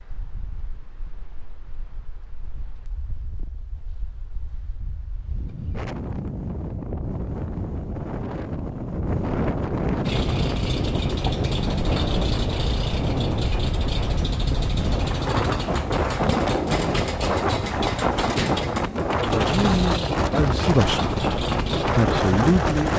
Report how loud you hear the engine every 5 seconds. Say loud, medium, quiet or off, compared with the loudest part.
off, off, loud, loud, loud.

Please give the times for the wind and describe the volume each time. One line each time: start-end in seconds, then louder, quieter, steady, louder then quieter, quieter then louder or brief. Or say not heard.
0.0-22.9 louder.